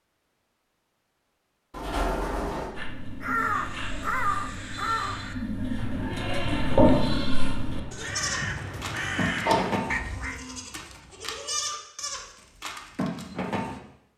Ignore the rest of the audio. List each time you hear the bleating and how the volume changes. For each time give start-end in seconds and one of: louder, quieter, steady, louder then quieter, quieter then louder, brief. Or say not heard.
2.8-13.8 louder then quieter.